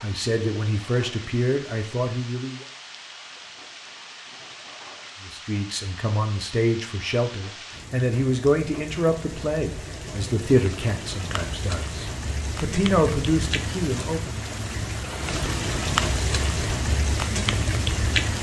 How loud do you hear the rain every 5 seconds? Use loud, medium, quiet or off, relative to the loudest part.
quiet, quiet, medium, loud.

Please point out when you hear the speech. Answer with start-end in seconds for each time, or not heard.
0.0-2.6, 5.2-14.4.